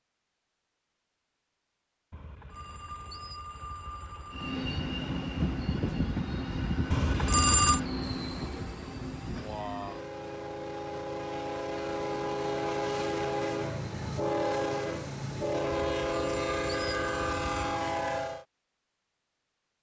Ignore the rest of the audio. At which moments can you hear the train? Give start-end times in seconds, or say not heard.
4.3-18.4.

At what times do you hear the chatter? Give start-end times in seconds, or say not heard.
not heard.